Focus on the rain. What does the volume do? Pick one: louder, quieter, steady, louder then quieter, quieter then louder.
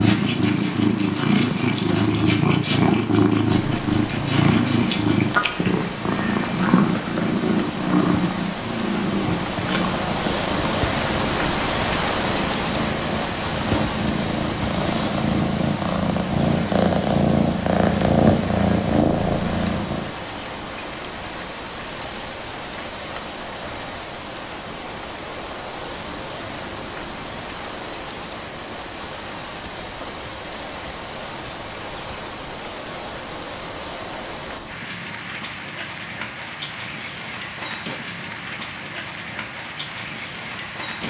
louder then quieter.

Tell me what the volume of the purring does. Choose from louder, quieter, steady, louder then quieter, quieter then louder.
quieter then louder.